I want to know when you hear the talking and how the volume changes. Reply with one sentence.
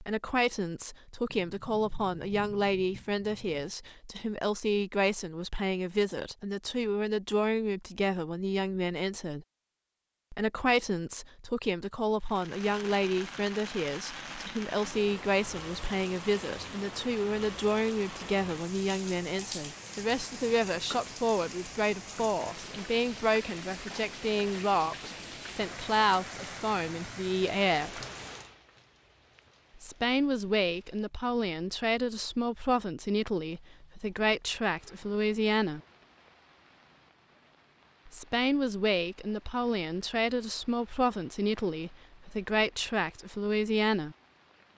You can hear the talking from 0.0 to 9.4 s, at a steady volume; from 10.3 to 28.1 s, at a steady volume; from 29.8 to 35.8 s, at a steady volume; and from 38.0 to 44.1 s, at a steady volume.